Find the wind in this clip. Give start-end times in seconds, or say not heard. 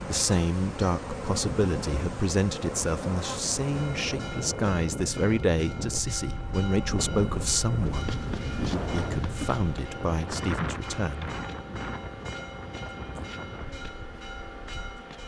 0.0-15.2.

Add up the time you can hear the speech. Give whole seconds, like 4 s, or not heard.
11 s.